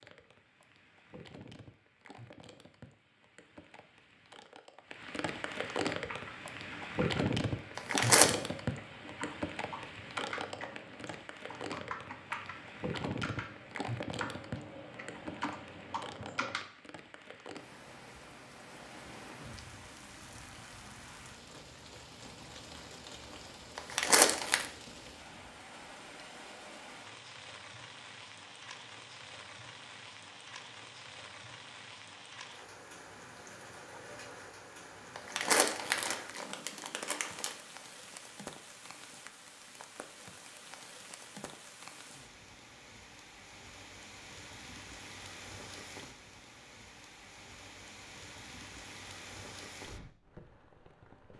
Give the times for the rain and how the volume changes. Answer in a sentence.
The rain can be heard from 0.0 to 51.3 s, getting quieter.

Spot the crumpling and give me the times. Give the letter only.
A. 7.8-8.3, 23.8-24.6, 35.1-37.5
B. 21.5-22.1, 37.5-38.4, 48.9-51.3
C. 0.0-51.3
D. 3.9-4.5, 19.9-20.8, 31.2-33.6
A.